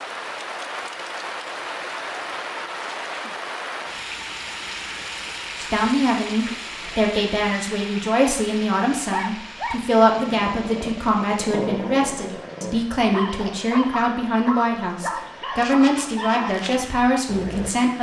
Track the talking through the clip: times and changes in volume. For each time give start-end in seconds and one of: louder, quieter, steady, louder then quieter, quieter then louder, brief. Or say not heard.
5.5-17.9 steady.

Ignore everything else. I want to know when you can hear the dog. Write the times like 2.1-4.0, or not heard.
9.0-17.7.